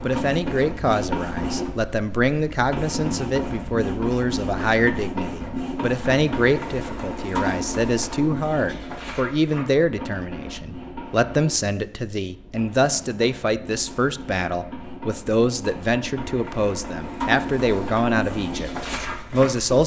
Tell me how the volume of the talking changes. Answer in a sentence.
The volume of the talking stays about the same.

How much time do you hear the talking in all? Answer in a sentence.
The talking can be heard for 20 seconds in total.